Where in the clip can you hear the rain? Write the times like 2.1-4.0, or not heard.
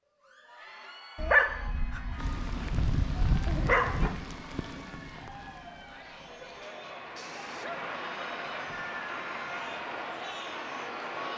2.1-11.3.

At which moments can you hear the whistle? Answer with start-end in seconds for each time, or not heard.
not heard.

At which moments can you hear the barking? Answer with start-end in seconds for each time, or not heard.
1.1-4.2, 6.2-8.8.